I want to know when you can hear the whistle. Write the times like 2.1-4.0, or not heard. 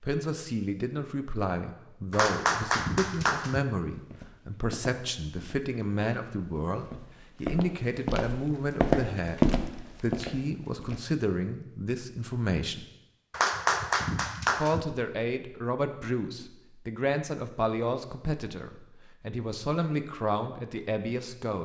not heard.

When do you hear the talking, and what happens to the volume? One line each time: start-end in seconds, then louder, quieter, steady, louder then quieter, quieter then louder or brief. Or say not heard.
0.0-12.8 steady
14.6-21.5 steady.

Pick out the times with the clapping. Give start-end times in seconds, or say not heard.
2.1-3.6, 13.3-14.8.